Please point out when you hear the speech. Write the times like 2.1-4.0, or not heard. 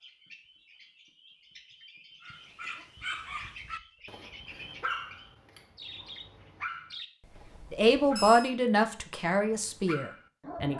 7.7-10.7.